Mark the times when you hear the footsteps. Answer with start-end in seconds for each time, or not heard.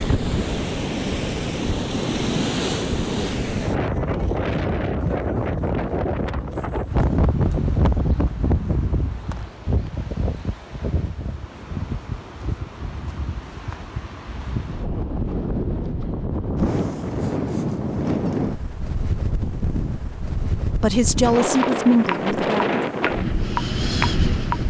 not heard.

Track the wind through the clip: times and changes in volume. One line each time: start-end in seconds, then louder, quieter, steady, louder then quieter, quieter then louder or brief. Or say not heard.
0.0-24.6 quieter then louder.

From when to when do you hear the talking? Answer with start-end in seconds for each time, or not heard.
20.8-22.6.